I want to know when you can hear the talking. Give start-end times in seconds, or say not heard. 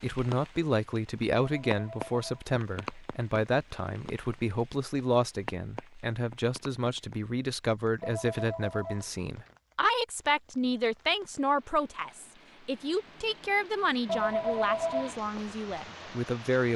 0.0-16.7.